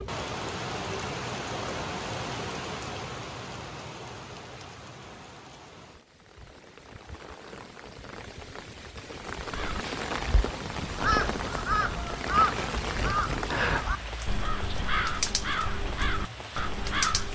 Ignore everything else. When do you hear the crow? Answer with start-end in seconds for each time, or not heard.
9.4-17.3.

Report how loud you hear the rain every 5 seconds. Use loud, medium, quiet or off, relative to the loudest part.
loud, medium, loud, loud.